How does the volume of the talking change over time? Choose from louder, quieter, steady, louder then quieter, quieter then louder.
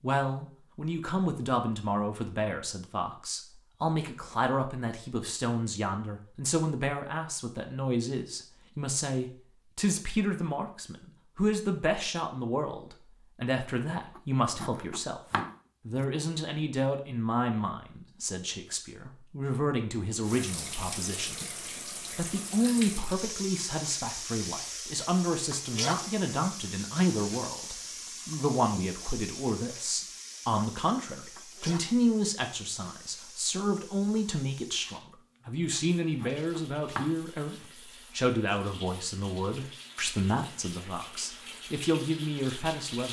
steady.